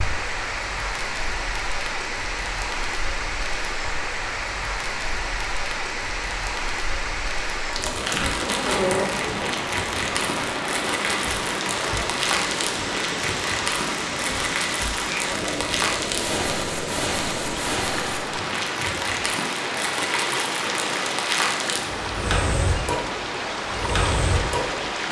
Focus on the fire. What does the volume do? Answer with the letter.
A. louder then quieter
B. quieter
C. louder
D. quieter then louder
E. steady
C.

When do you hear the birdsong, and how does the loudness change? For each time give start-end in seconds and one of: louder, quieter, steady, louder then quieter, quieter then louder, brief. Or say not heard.
not heard.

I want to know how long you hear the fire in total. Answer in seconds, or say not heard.
25 s.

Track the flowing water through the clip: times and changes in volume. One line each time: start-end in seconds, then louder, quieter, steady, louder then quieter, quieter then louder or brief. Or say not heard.
0.0-25.0 steady.